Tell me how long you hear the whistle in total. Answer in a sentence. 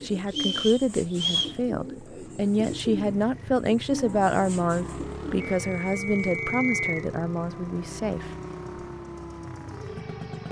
The whistle can be heard for 3 seconds in total.